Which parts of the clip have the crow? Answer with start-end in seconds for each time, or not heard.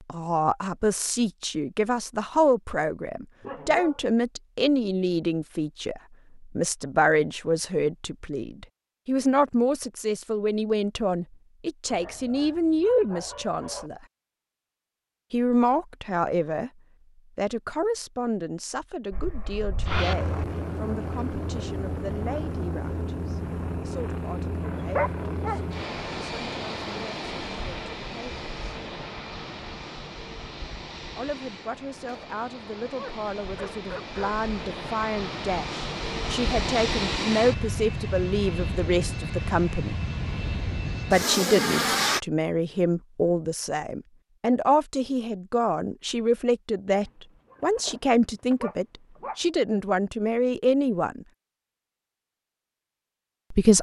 not heard.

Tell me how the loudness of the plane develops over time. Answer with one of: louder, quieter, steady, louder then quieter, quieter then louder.
quieter then louder.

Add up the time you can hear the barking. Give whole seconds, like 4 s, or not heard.
8 s.